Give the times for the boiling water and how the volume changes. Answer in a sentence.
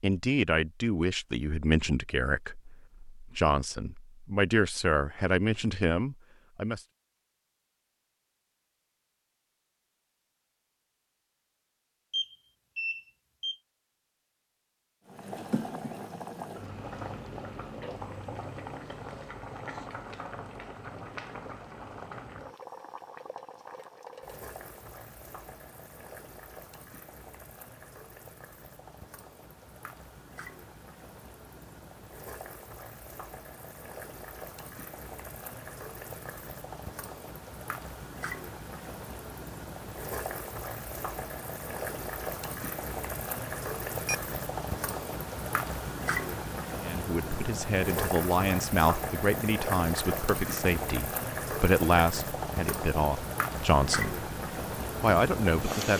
The boiling water can be heard from 15.1 to 55.9 s, getting quieter then louder.